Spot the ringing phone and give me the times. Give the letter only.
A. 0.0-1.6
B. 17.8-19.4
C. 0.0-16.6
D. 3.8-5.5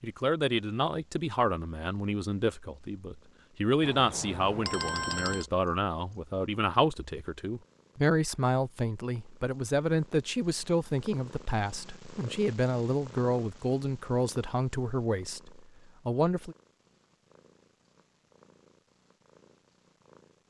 D.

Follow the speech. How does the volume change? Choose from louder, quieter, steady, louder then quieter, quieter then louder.
steady.